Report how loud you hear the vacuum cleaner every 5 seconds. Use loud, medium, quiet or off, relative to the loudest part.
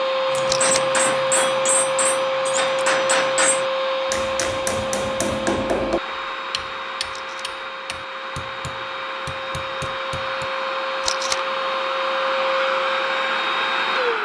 loud, medium, loud.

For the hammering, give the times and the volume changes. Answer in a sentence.
You can hear the hammering from 0.3 to 10.5 s, getting quieter.